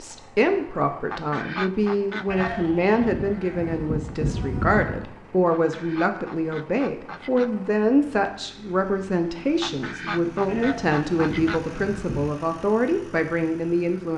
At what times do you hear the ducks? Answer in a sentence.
You can hear the ducks from 1.1 to 2.5 s, from 5.5 to 7.5 s and from 9.6 to 11.6 s.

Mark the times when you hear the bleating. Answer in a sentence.
You can hear the bleating from 2.2 to 5.1 s and from 10.4 to 12.2 s.